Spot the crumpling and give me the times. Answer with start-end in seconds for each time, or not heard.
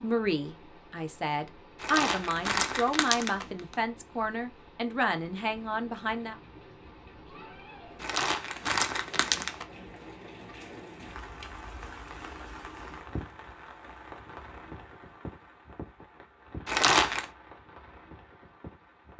1.8-3.8, 8.0-9.7, 16.6-17.2.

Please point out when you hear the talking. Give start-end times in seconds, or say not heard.
0.0-6.3.